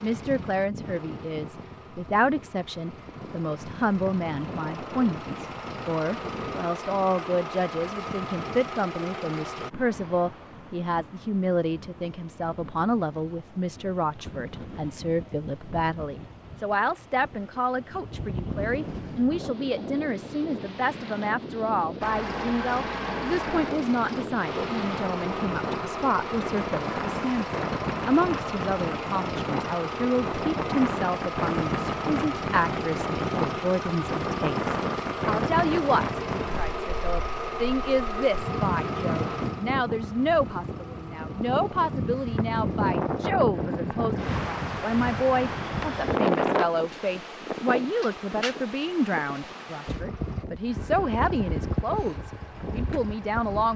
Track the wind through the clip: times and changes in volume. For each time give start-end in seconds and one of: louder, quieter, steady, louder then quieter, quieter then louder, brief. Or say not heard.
0.0-53.7 louder.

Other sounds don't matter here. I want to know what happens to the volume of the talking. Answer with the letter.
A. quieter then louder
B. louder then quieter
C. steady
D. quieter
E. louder
C.